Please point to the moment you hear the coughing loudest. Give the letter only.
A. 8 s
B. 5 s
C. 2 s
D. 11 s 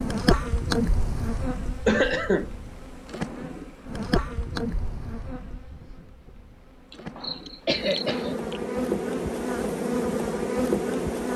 C.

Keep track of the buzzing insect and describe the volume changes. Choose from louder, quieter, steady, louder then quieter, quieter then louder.
quieter then louder.